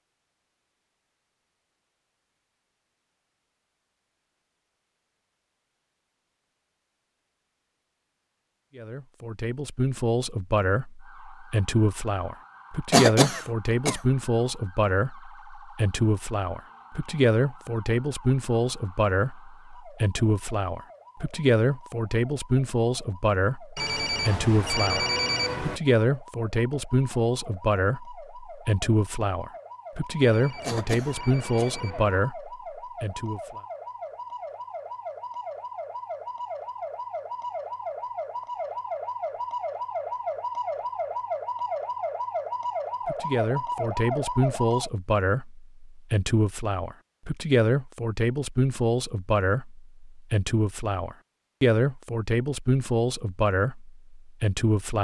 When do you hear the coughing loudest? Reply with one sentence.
The volume of the coughing peaks at 13 seconds.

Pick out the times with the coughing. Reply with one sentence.
You can hear the coughing from 12.9 to 14.0 s and from 30.6 to 31.8 s.